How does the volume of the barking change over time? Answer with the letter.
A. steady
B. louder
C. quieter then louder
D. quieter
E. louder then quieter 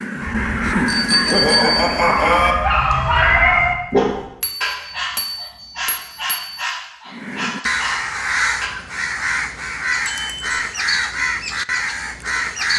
E.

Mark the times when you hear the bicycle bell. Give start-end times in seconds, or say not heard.
0.8-2.5, 4.4-6.6, 10.1-10.6.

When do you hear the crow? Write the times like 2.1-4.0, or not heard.
0.0-2.8, 7.1-12.7.